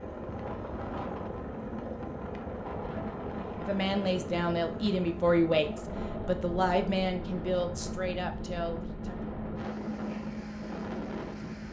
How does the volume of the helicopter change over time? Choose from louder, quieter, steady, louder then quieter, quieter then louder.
steady.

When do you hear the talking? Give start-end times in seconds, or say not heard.
3.6-9.2.